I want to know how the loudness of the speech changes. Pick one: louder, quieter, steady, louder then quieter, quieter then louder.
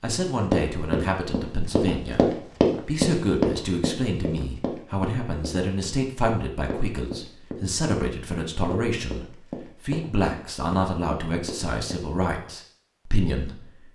steady.